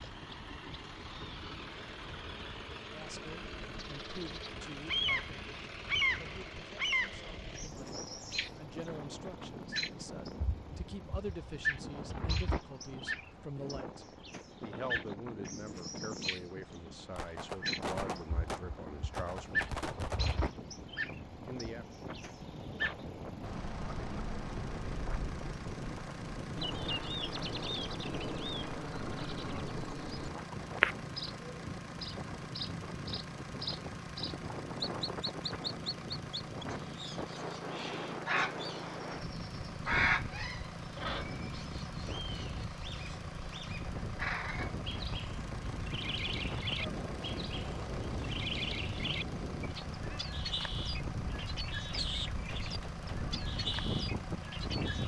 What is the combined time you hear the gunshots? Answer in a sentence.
The gunshots can be heard for 5 seconds in total.